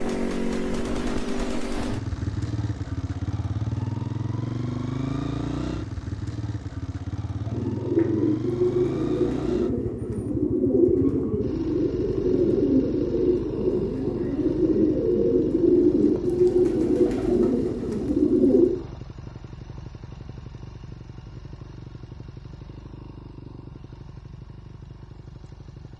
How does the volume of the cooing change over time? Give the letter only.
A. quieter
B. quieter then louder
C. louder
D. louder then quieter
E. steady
E.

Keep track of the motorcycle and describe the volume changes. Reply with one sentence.
The loudness of the motorcycle goes down.